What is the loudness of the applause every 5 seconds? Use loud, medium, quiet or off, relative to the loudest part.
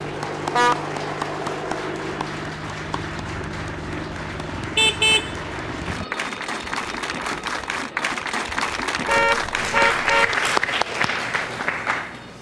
medium, loud, loud.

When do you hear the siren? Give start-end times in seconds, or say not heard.
not heard.